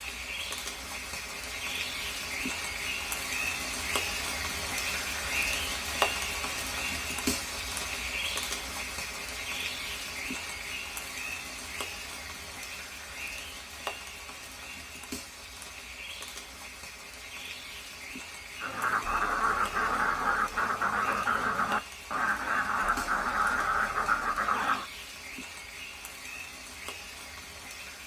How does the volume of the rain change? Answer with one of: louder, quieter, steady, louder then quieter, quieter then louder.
quieter.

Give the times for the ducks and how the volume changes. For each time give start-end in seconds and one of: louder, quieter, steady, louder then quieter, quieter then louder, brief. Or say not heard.
18.6-24.9 steady.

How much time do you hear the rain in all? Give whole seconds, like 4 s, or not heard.
28 s.